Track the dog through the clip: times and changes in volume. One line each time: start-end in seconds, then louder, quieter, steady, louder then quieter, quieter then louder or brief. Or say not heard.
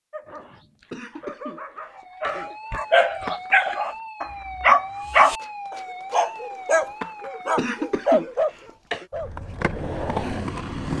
0.1-9.3 louder then quieter.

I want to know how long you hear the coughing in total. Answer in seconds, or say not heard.
3 s.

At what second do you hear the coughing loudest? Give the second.
8 s.